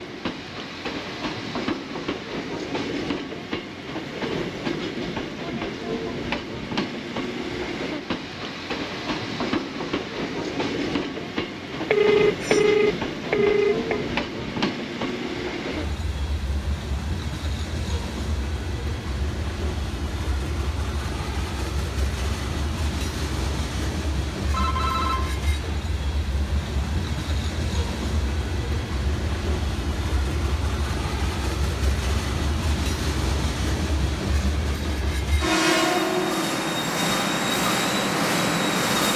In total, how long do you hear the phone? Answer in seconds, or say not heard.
3 s.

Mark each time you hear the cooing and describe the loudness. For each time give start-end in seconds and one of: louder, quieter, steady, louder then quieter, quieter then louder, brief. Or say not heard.
not heard.